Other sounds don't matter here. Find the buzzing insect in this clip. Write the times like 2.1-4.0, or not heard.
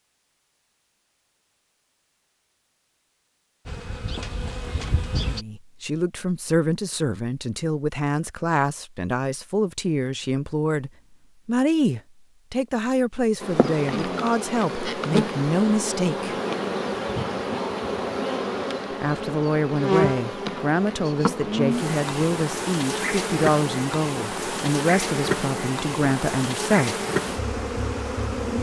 3.6-5.5, 13.4-28.5.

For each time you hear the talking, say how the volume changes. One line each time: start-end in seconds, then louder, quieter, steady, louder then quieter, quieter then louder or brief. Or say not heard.
5.2-16.4 steady
18.9-27.1 steady.